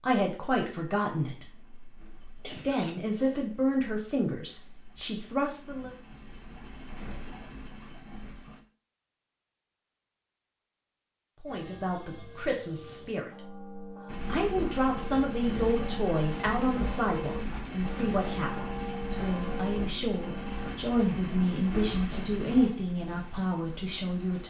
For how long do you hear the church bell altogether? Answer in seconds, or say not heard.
9 s.